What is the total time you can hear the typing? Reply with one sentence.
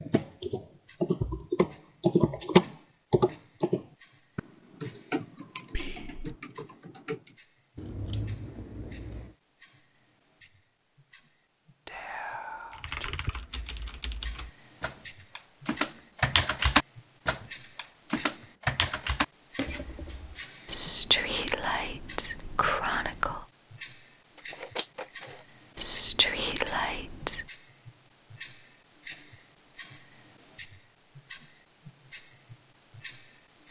You can hear the typing for 15 seconds altogether.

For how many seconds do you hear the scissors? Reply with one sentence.
The scissors can be heard for 3 seconds in total.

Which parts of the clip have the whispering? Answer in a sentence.
You can hear the whispering from 5.7 to 6.3 s, from 11.8 to 13.3 s, from 20.6 to 23.4 s and from 25.8 to 27.4 s.